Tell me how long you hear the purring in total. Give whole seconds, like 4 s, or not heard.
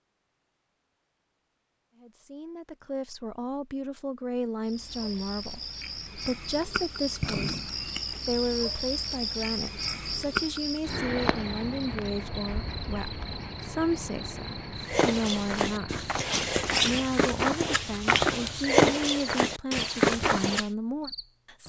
not heard.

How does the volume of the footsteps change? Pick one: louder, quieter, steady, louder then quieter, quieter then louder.
louder.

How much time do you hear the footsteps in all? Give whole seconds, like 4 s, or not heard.
6 s.